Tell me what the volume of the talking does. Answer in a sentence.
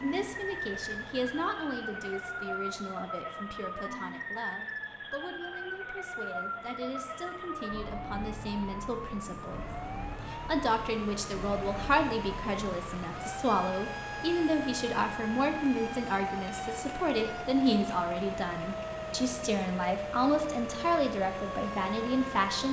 The loudness of the talking goes up.